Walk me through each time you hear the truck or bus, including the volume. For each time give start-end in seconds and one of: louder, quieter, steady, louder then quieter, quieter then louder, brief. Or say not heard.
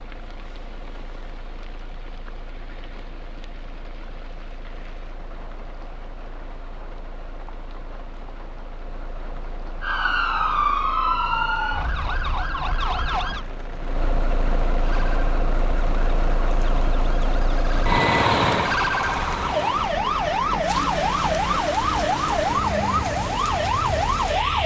0.0-24.6 louder then quieter.